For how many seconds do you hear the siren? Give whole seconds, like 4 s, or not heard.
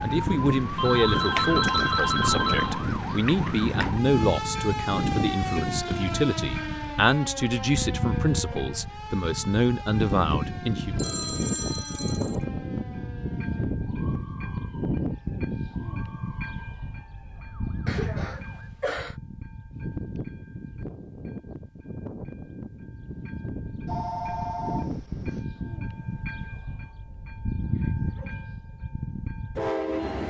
19 s.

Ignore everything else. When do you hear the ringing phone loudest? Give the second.
2 s.